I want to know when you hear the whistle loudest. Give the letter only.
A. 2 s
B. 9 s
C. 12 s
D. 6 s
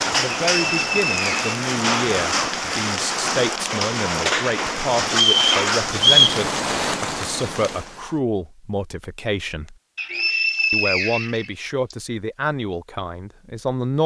D.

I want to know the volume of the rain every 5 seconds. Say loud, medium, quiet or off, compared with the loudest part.
loud, loud, off.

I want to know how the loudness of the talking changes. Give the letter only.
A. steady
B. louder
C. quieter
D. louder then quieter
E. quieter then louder
A.